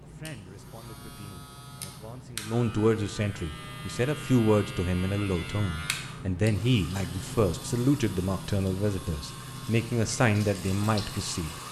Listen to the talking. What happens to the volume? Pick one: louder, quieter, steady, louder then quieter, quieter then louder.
louder.